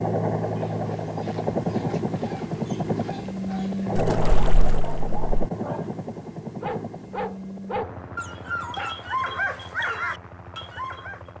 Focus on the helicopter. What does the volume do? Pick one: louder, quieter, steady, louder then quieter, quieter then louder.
quieter.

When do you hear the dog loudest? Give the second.
9 s.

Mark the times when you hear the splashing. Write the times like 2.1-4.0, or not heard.
4.0-5.5.